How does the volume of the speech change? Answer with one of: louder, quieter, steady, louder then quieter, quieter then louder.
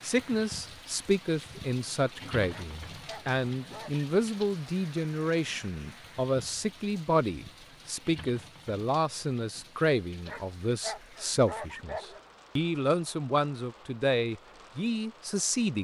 steady.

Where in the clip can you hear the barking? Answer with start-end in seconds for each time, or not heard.
2.5-4.0, 10.2-12.2.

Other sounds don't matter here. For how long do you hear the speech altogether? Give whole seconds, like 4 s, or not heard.
16 s.